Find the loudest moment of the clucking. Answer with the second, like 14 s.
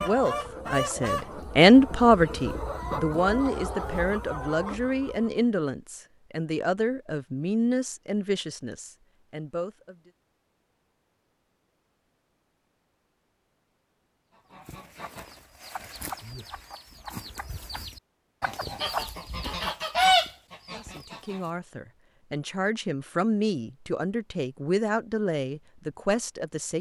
20 s.